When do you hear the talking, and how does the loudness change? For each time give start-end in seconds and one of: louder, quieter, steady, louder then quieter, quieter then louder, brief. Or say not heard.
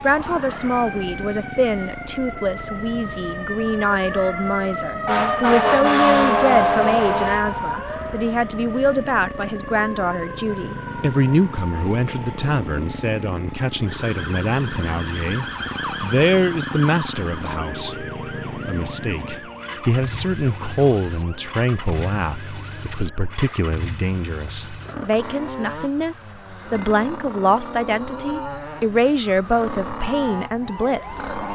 0.0-31.2 steady.